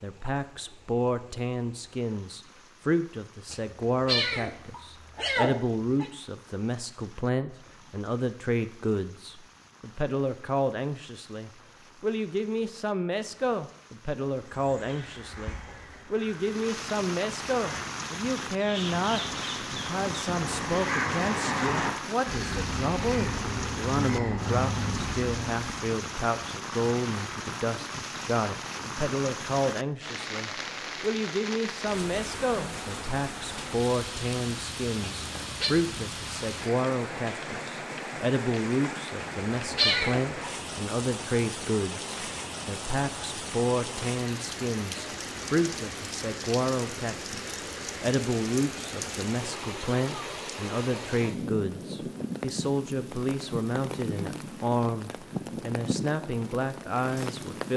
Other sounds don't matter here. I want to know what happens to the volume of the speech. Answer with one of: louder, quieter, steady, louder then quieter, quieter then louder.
steady.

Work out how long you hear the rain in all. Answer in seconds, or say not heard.
58 s.